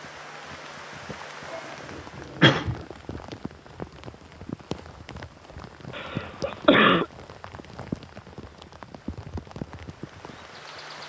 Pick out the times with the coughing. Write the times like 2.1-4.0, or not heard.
1.5-2.9, 6.0-7.0.